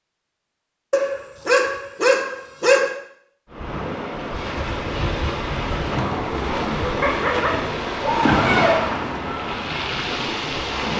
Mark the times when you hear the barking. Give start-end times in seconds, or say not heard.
0.9-3.0, 7.0-8.8.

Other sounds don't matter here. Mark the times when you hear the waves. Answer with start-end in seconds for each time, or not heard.
3.5-10.9.